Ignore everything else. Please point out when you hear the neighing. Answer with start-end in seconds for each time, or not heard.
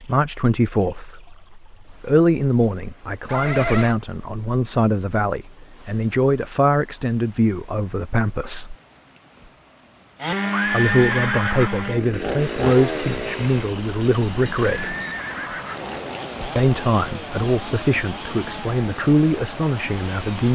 3.2-4.0, 10.5-11.9, 14.8-15.9.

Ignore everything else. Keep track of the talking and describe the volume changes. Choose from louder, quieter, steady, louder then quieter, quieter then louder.
steady.